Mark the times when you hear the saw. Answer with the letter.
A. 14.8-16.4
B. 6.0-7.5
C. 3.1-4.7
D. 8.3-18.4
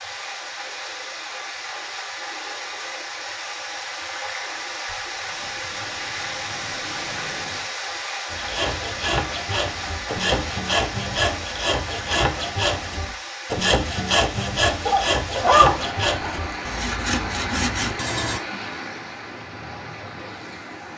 D.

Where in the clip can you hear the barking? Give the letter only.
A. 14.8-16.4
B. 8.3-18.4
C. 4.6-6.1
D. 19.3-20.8
A.